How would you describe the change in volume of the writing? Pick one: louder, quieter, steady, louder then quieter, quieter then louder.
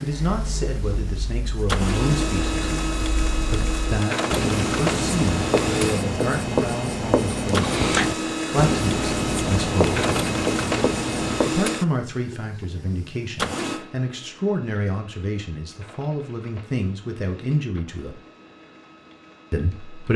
louder.